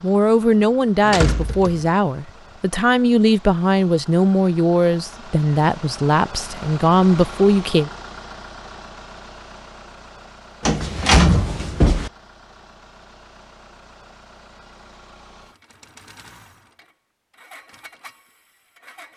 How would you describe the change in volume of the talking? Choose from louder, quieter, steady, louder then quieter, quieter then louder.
steady.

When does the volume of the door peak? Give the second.
11 s.